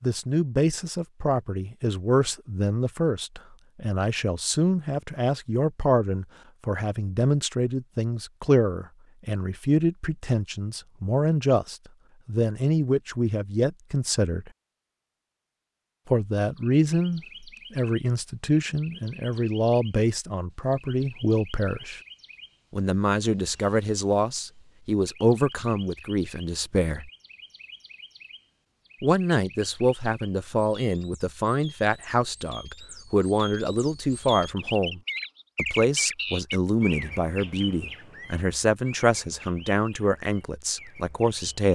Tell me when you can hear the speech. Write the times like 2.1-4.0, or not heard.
0.0-14.5, 16.1-22.0, 22.7-27.1, 29.0-41.6.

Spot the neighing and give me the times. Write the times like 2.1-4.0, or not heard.
not heard.